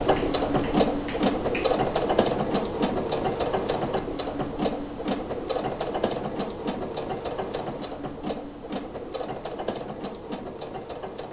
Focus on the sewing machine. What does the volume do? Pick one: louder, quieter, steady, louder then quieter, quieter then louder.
quieter.